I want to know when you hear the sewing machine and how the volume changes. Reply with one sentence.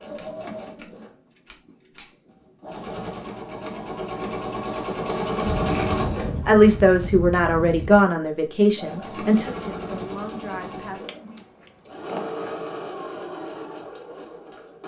The sewing machine can be heard from 0.0 to 14.8 s, getting louder then quieter.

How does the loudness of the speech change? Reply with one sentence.
The volume of the speech goes down.